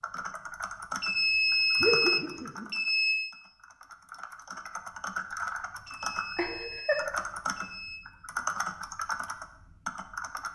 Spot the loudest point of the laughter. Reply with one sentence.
The volume of the laughter peaks at 2 seconds.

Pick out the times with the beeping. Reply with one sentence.
The beeping can be heard from 1.0 to 3.4 s and from 5.8 to 8.1 s.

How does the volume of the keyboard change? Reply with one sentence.
The volume of the keyboard goes down, then up.